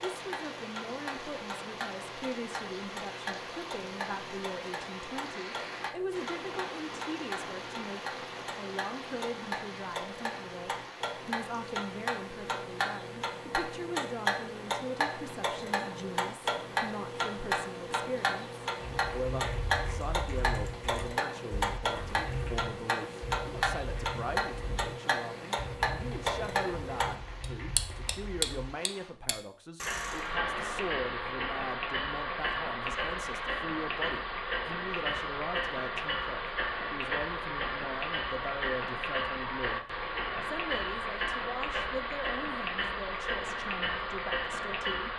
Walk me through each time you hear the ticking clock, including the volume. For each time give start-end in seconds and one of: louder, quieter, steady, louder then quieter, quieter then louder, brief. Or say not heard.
0.0-45.1 louder.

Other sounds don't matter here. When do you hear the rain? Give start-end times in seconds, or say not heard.
0.0-29.1.